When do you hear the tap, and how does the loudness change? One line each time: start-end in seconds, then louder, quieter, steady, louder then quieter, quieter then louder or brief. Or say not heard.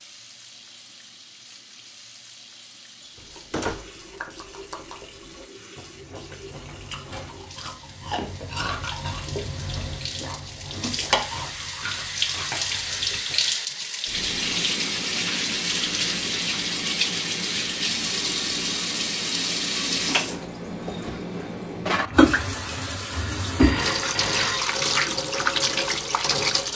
0.0-26.7 louder.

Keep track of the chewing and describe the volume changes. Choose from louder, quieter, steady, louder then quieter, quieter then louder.
louder then quieter.